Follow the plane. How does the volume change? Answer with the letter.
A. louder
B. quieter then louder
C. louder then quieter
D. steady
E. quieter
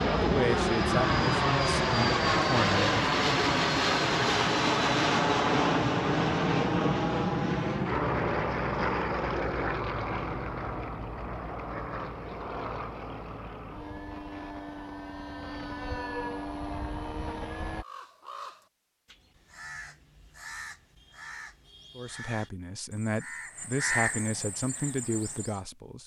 E.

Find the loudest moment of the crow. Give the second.
24 s.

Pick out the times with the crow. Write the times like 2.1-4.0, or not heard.
17.8-25.6.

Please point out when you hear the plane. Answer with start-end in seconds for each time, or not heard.
0.0-17.9.